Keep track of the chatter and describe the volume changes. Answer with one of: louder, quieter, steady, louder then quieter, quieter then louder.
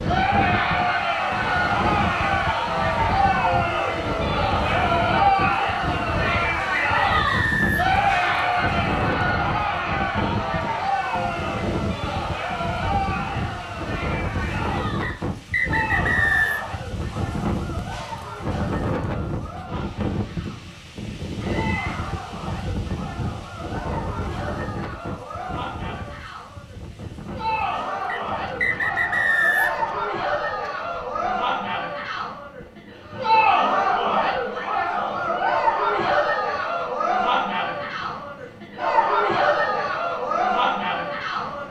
quieter then louder.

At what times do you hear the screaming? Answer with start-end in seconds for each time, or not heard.
21.4-22.2.